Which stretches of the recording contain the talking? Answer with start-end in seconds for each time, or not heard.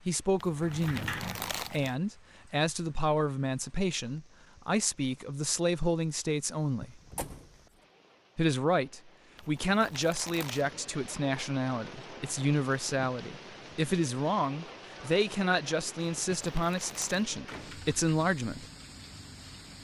0.1-7.0, 8.3-18.6.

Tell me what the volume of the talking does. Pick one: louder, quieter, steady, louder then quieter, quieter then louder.
steady.